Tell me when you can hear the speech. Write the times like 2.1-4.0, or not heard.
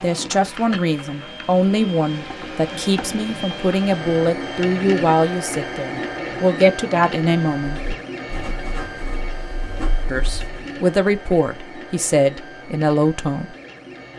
0.0-7.8, 10.1-13.6.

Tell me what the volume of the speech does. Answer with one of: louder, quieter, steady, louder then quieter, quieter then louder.
steady.